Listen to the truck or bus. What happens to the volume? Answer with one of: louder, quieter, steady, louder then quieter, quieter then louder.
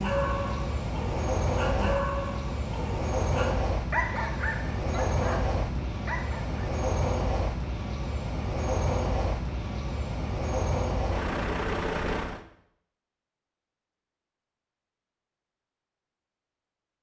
steady.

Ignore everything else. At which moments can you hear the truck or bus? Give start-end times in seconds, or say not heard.
0.0-12.4.